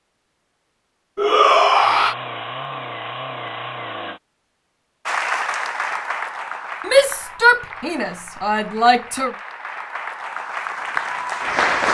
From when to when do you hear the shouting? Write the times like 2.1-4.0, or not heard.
1.1-2.1, 6.8-9.3.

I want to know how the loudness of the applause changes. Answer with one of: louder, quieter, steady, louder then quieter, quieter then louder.
quieter then louder.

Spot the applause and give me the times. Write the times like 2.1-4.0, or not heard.
5.0-11.8.